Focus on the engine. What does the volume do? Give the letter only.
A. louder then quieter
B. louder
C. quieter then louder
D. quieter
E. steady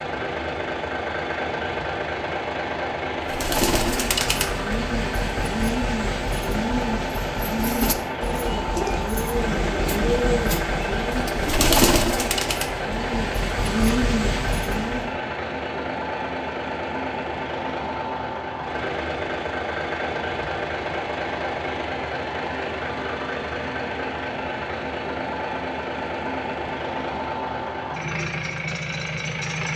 E.